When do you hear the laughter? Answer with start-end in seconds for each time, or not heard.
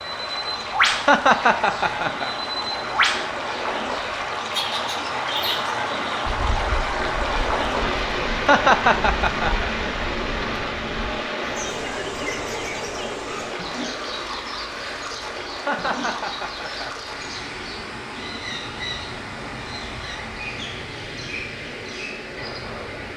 0.9-2.3, 8.3-9.7, 15.5-16.9.